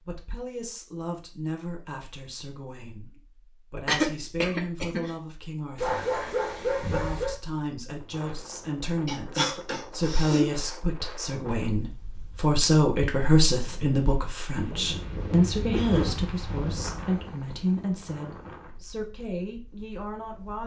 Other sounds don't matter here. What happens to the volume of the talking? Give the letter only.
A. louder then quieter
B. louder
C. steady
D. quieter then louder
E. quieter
A.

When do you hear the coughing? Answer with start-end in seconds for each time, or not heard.
3.9-5.1, 9.1-10.4, 15.7-16.2.